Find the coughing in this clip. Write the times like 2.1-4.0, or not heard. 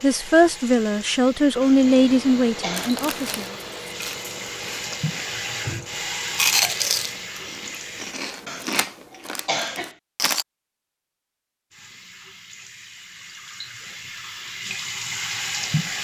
1.6-2.9, 8.4-9.9.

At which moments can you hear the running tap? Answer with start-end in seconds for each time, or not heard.
0.0-8.2, 11.7-16.0.